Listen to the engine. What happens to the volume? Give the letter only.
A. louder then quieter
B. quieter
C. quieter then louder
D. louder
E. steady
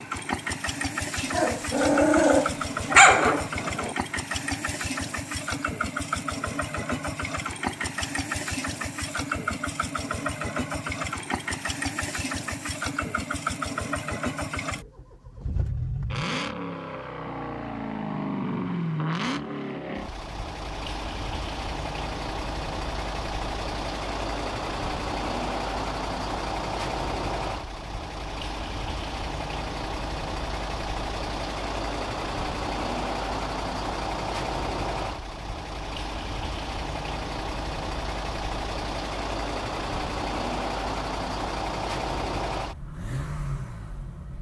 E.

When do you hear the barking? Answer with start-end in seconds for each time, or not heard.
1.1-4.0.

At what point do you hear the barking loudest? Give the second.
3 s.